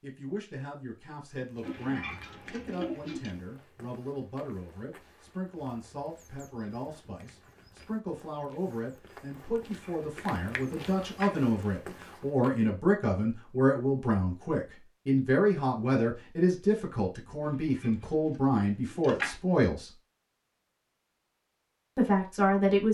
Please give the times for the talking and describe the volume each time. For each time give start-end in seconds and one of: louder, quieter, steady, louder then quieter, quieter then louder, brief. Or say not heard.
0.0-19.9 louder
21.9-22.8 brief.